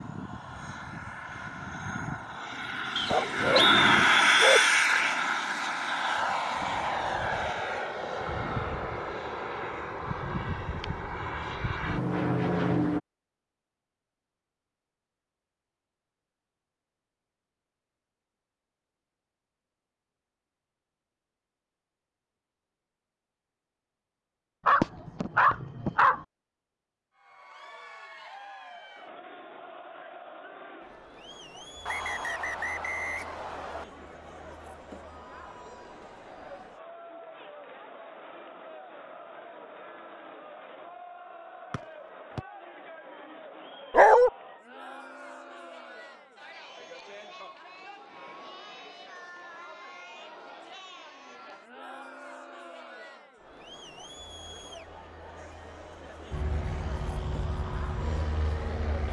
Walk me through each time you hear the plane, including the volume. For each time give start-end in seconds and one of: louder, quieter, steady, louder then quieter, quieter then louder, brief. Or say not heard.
0.0-13.0 louder then quieter
56.3-59.0 brief.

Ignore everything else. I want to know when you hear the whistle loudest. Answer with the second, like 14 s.
4 s.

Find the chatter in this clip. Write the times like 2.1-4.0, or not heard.
27.1-59.0.